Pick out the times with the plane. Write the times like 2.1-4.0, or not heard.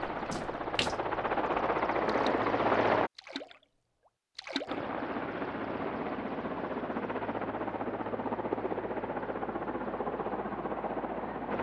0.0-3.1, 4.7-11.5.